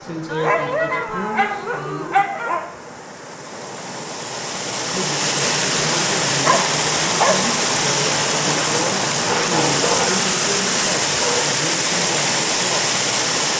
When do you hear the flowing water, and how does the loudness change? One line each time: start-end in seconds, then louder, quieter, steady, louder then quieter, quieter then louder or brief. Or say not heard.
0.0-13.5 louder.